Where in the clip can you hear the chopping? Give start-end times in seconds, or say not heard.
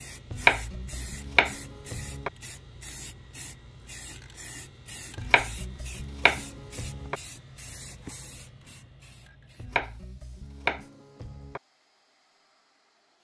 0.3-2.3, 5.2-7.2, 9.6-11.6.